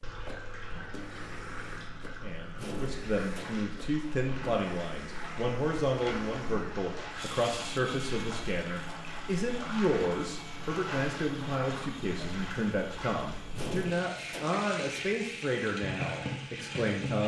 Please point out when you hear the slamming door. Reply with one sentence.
The slamming door can be heard from 2.5 to 3.6 s and from 13.5 to 14.7 s.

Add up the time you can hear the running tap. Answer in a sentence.
The running tap can be heard for 17 seconds in total.